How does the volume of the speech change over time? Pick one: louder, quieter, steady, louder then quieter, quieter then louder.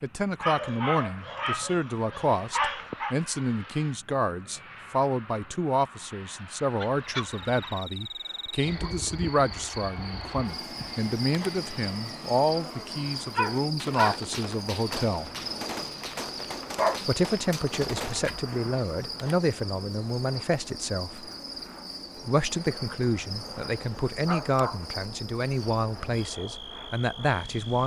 steady.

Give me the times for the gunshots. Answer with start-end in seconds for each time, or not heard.
13.8-18.4.